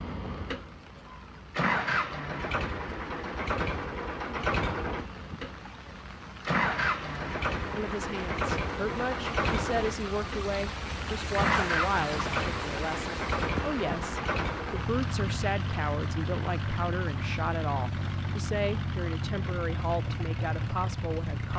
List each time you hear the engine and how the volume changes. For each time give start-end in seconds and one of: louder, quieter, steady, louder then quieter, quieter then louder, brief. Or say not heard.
0.0-21.5 steady.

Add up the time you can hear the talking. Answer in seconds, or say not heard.
14 s.